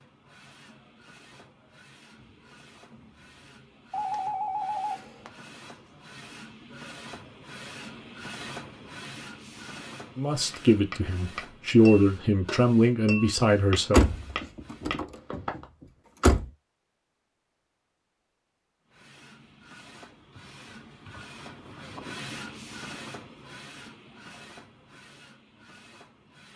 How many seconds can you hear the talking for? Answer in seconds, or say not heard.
4 s.